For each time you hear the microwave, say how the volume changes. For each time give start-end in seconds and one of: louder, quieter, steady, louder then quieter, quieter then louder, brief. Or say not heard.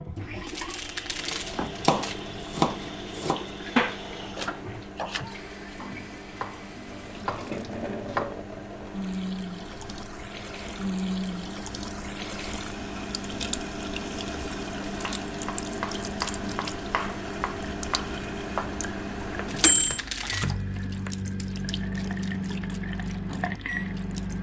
0.1-24.3 louder.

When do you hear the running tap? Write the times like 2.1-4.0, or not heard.
0.0-24.3.